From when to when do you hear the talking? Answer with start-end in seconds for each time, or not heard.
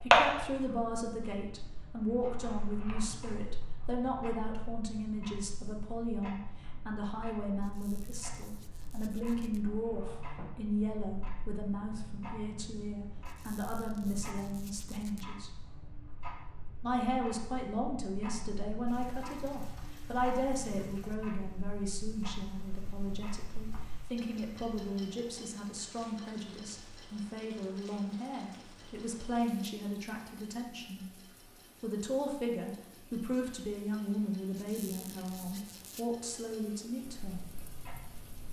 0.0-15.5, 16.8-31.1, 31.8-37.5.